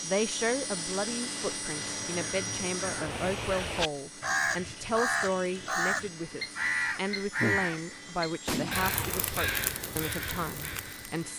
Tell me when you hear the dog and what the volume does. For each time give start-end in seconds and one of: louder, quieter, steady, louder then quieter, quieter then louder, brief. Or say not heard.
not heard.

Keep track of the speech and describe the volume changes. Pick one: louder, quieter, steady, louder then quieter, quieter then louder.
steady.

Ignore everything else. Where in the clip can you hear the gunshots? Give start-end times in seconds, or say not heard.
8.4-9.3.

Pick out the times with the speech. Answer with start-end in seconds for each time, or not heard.
0.0-11.3.